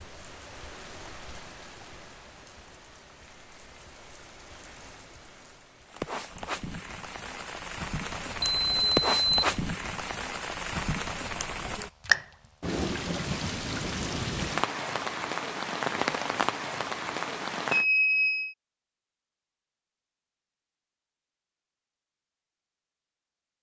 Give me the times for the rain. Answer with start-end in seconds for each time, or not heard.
0.0-17.9.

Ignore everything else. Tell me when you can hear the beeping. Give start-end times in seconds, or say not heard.
8.4-9.3, 17.7-18.6.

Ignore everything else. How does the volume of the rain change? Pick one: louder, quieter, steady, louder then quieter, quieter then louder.
louder.